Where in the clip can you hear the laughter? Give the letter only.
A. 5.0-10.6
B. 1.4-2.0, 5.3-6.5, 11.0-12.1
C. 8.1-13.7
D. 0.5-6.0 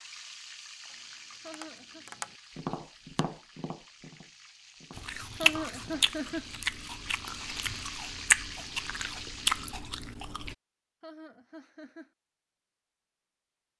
B.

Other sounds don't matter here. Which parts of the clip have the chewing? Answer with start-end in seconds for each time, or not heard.
5.0-10.6.